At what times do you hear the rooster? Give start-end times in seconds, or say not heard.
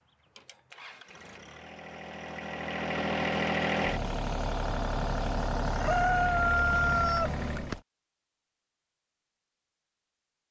5.8-7.8.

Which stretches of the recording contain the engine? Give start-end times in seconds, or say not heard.
0.0-7.8.